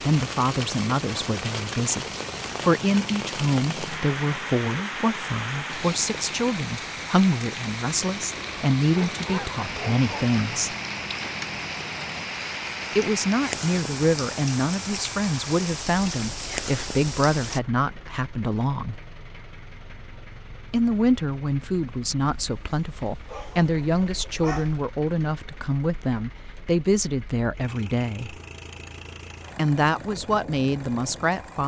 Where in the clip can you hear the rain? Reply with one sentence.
The rain can be heard from 0.0 to 17.6 s.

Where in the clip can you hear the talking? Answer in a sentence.
You can hear the talking from 0.0 to 10.8 s, from 12.9 to 19.0 s, from 20.7 to 28.4 s and from 29.6 to 31.6 s.